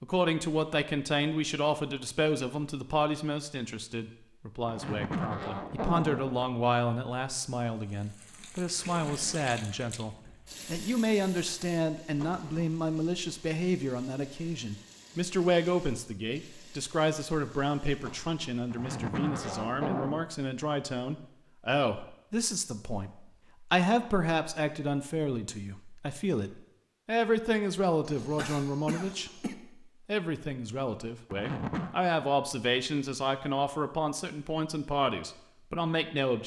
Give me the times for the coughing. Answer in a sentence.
The coughing can be heard from 28.1 to 29.6 s.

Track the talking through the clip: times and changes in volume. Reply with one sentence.
You can hear the talking from 0.0 to 36.4 s, at a steady volume.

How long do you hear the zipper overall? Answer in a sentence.
The zipper can be heard for 4 seconds in total.